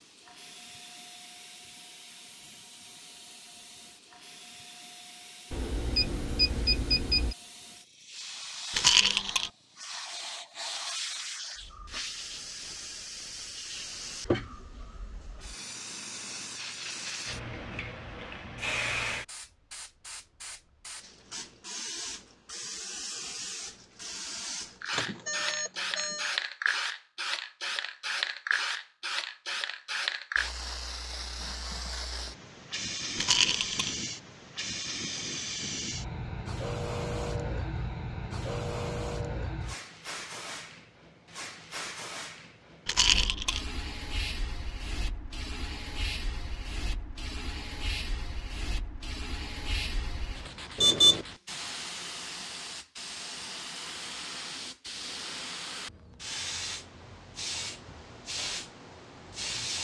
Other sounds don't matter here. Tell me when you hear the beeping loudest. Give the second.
51 s.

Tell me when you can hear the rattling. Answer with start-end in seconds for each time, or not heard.
8.7-9.5, 33.1-34.0, 42.9-43.6.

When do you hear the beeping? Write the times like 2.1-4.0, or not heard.
5.5-7.3, 24.9-26.4, 50.8-51.2.